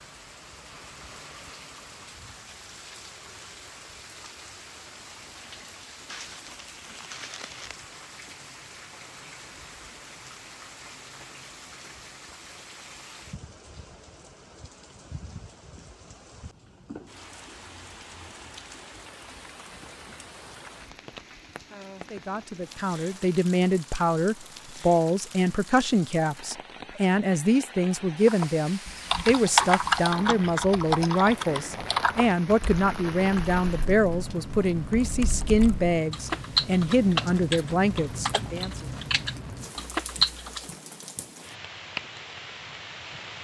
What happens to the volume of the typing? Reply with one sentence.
The volume of the typing goes down, then up.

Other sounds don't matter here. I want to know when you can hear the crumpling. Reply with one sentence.
The crumpling can be heard from 6.0 to 7.8 s.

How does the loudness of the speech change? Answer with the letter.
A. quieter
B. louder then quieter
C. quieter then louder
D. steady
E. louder
D.